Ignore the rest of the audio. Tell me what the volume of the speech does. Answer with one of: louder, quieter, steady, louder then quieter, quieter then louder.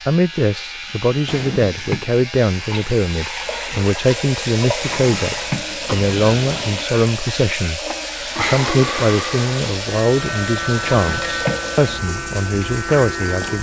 steady.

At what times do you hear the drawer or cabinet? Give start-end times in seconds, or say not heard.
1.2-2.0, 4.8-6.8, 10.8-11.8.